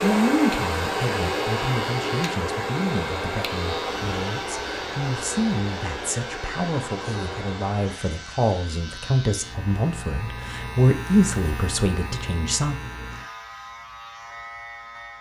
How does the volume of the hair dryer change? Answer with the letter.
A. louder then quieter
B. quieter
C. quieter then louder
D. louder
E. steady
B.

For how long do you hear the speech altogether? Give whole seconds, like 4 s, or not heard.
13 s.